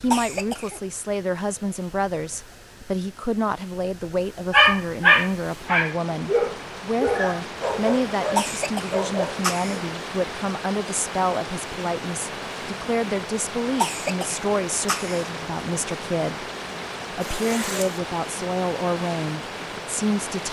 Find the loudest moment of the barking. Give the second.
5 s.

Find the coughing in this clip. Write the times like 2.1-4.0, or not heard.
0.1-0.8, 8.3-9.8, 13.8-15.2.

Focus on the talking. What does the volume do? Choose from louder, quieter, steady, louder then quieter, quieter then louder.
steady.